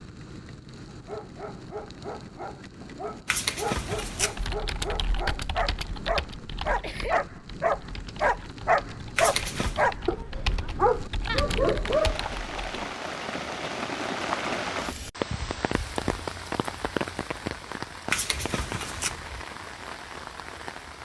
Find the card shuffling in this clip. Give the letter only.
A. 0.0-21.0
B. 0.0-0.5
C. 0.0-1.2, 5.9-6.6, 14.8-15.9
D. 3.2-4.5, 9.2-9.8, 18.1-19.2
D.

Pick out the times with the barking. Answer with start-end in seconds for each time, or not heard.
0.8-12.2.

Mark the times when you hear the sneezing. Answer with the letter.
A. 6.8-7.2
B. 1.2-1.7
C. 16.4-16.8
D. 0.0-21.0
A.